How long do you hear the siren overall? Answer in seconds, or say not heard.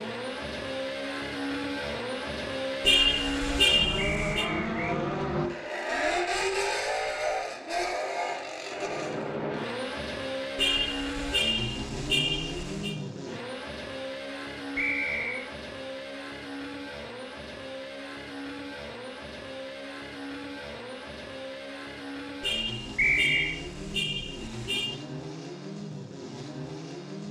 not heard.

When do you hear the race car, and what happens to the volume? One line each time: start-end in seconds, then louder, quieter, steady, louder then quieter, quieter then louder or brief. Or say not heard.
0.0-27.2 quieter.